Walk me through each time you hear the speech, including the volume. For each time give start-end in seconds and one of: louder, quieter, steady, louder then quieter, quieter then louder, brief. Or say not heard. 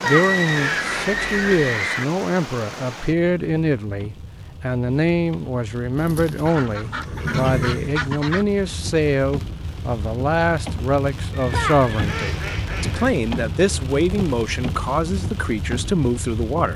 0.0-16.7 steady.